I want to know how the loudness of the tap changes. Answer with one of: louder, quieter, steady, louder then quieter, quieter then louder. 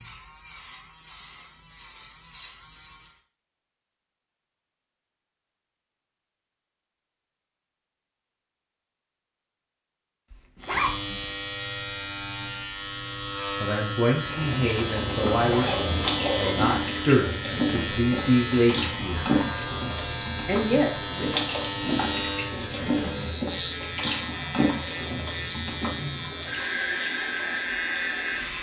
steady.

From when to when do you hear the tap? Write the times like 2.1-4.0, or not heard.
14.2-28.5.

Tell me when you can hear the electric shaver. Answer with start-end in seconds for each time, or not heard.
0.0-3.2, 10.6-28.5.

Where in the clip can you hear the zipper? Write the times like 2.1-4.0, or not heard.
10.3-11.3, 14.8-16.8.